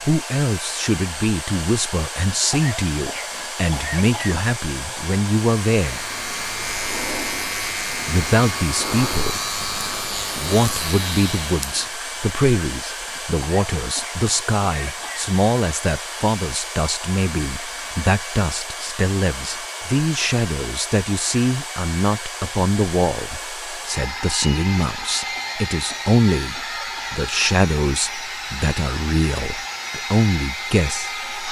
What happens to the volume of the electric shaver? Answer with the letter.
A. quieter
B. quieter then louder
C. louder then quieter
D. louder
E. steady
E.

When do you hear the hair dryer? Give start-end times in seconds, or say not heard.
0.0-31.4.